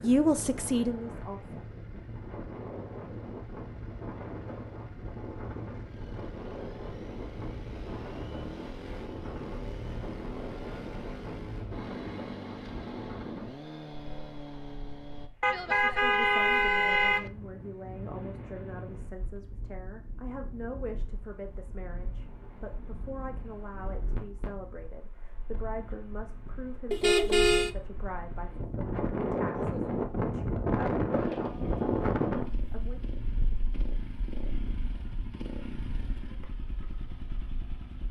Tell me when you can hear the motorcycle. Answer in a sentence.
You can hear the motorcycle from 0.0 to 15.3 s and from 31.1 to 38.0 s.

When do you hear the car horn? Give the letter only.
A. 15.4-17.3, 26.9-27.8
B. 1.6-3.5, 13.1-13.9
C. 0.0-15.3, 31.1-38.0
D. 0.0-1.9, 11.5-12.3
A.